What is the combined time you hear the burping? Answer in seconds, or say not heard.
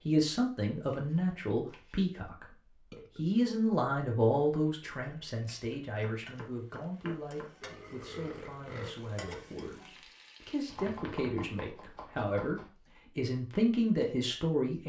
2 s.